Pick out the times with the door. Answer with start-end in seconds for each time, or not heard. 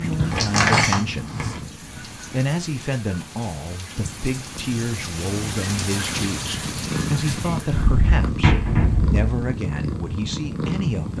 0.3-1.6, 7.8-9.2.